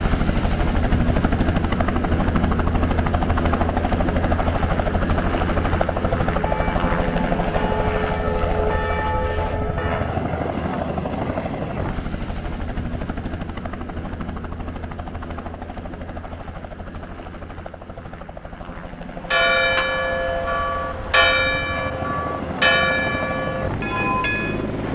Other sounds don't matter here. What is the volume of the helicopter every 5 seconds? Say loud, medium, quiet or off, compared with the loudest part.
loud, loud, medium, quiet, medium.